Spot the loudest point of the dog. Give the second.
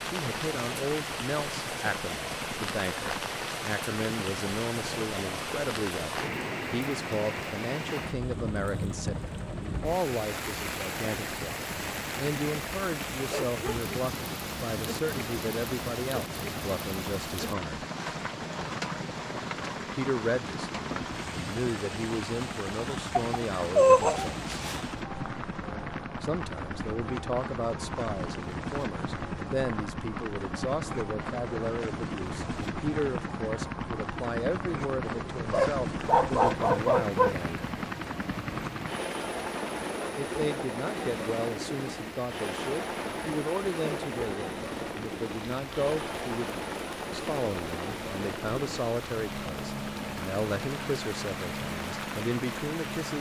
24 s.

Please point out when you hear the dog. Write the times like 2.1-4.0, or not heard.
23.1-24.8, 35.5-37.4.